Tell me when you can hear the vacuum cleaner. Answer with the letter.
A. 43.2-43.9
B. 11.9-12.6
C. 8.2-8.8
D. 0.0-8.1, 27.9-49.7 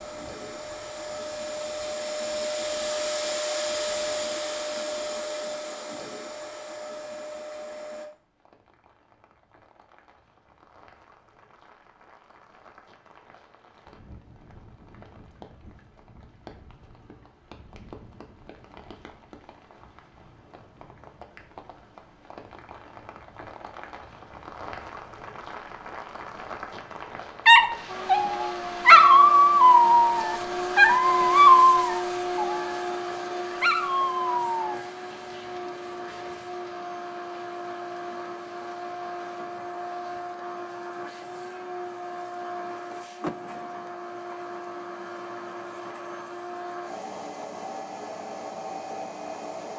D.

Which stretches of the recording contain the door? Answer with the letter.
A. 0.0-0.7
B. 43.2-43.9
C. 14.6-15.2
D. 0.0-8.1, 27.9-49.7
B.